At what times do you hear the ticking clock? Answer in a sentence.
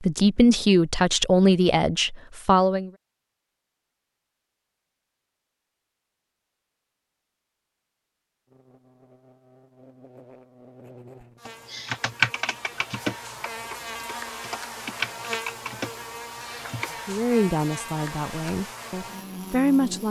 The ticking clock can't be heard in this clip.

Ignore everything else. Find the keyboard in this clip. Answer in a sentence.
You can hear the keyboard from 11.4 to 16.9 s.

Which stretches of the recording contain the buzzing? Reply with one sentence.
The buzzing can be heard from 8.4 to 20.0 s.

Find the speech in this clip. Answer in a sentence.
The speech can be heard from 0.0 to 2.9 s and from 17.1 to 20.0 s.